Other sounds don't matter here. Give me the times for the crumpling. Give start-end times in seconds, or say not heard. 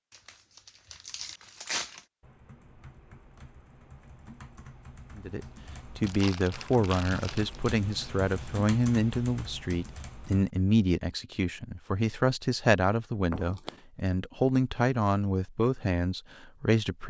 0.1-2.0, 6.0-7.6, 13.3-13.8.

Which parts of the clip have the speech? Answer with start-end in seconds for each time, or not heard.
5.2-17.0.